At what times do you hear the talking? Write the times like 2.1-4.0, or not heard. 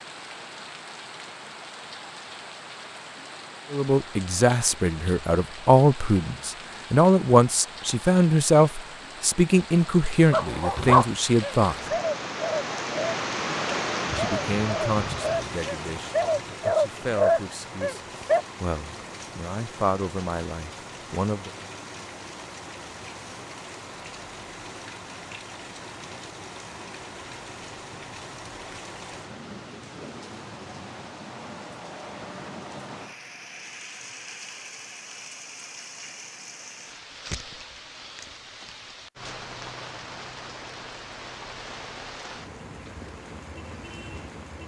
3.7-11.9, 14.2-21.5.